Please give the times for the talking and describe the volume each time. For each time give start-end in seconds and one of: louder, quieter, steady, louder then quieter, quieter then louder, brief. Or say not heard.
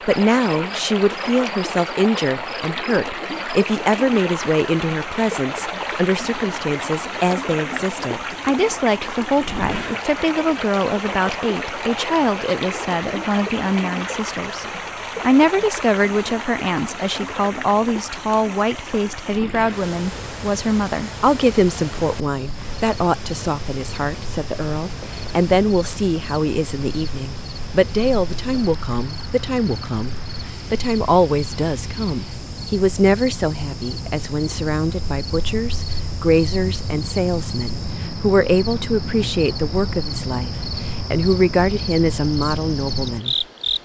0.1-43.8 steady.